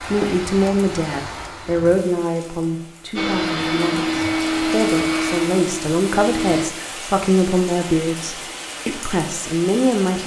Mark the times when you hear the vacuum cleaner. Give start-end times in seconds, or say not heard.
3.1-6.7.